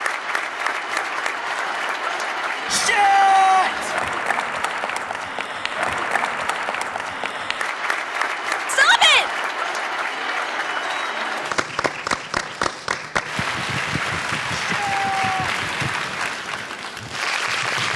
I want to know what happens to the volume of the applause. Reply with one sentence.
The loudness of the applause stays about the same.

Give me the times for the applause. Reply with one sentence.
You can hear the applause from 0.0 to 17.9 s.